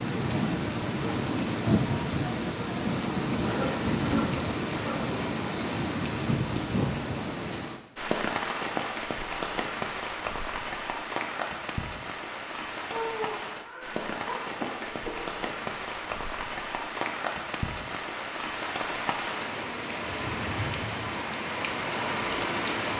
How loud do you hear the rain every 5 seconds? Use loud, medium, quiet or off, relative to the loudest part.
loud, loud, medium, medium, loud.